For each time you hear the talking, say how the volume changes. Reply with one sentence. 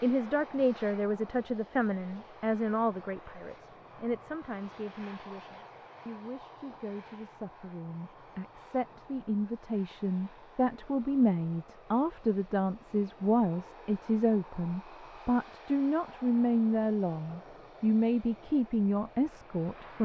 The talking can be heard from 0.0 to 19.9 s, getting quieter then louder.